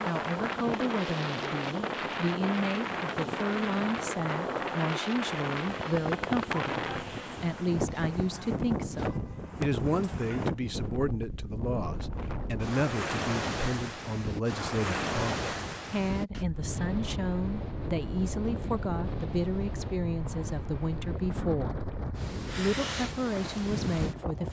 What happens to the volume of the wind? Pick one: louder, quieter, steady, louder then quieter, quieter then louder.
steady.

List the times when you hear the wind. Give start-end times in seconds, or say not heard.
0.0-24.4.